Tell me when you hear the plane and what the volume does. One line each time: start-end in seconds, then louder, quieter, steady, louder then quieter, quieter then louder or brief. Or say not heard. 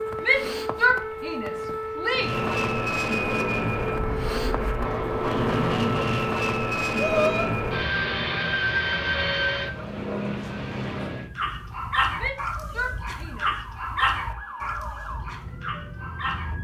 2.1-11.3 steady.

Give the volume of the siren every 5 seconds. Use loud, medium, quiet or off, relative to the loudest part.
loud, loud, medium, medium.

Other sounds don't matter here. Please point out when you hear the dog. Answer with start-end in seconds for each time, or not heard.
11.3-16.5.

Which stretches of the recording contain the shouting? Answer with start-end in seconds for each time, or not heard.
0.2-2.3, 7.0-7.5, 12.2-14.1.